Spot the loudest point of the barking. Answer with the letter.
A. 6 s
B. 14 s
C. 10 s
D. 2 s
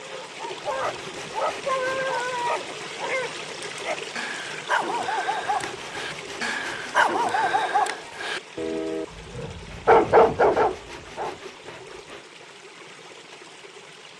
C.